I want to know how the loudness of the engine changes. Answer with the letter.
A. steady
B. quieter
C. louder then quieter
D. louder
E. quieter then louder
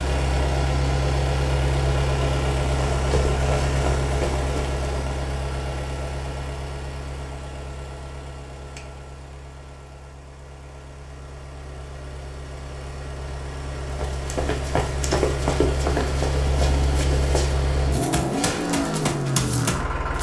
E.